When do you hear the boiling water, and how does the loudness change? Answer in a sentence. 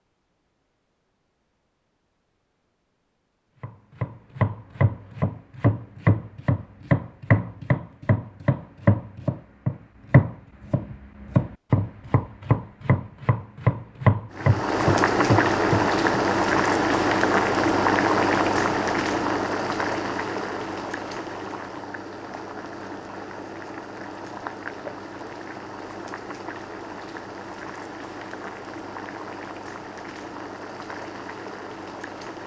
You can hear the boiling water from 14.3 to 32.4 s, getting quieter.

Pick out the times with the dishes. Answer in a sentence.
You can't hear the dishes here.